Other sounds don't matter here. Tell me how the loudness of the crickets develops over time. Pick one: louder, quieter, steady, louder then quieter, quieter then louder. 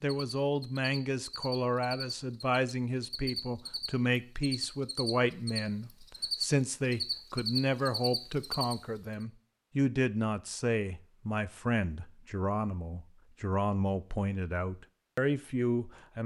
louder.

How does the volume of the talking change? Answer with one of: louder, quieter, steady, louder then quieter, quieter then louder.
steady.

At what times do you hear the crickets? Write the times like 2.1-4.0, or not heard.
0.0-8.8.